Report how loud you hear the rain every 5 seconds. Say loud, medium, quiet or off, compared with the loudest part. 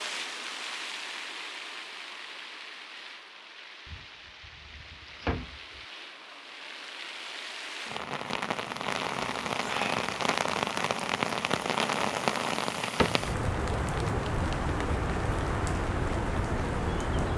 medium, medium, loud, loud.